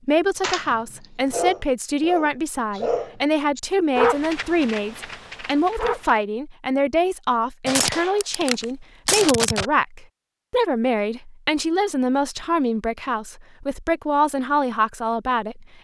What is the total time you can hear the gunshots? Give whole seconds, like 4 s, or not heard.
2 s.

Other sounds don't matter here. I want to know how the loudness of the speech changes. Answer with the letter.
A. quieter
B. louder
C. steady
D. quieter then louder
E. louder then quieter
C.